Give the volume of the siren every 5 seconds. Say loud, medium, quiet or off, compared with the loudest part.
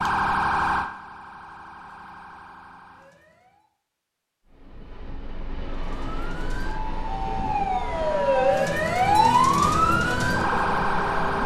medium, loud, loud.